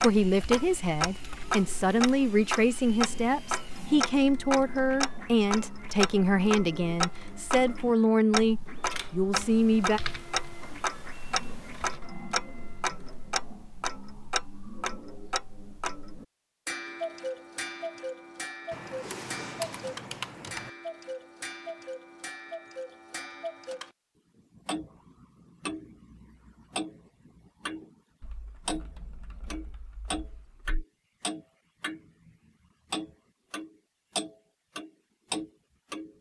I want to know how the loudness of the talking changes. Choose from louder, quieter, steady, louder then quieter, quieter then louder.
steady.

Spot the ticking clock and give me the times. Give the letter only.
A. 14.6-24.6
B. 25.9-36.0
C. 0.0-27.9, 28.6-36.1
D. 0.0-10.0
C.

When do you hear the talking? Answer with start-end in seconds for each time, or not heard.
0.0-10.0.